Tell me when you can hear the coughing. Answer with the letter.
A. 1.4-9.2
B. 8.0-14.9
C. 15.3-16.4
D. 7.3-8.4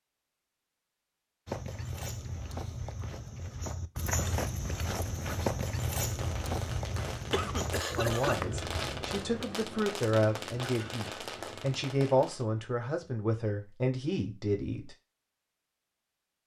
D.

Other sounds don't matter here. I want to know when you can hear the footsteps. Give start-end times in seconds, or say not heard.
1.4-9.2.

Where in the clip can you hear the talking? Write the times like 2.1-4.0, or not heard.
8.0-14.9.